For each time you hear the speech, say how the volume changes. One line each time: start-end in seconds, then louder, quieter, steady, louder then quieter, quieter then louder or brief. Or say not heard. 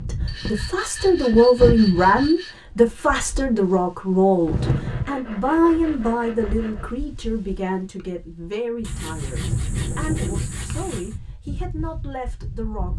0.1-12.9 quieter.